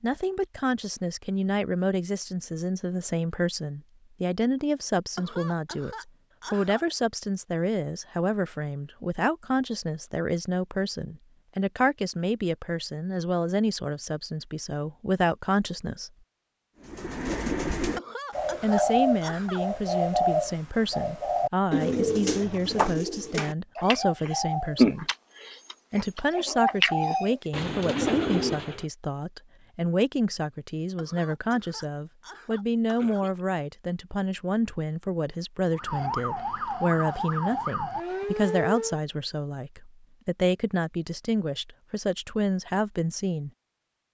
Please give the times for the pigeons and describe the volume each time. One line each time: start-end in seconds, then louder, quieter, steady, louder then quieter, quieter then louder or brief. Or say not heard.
16.9-28.9 steady.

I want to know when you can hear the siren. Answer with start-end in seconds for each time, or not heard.
35.7-39.0.